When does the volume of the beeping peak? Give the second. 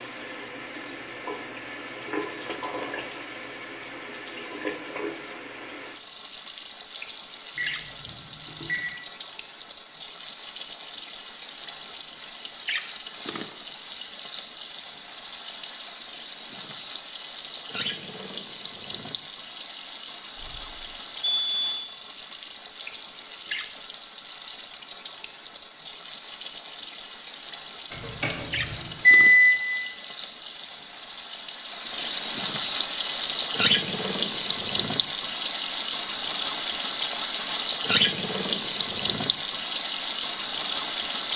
29 s.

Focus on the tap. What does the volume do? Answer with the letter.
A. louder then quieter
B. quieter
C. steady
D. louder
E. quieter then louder
D.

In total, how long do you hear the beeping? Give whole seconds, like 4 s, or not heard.
4 s.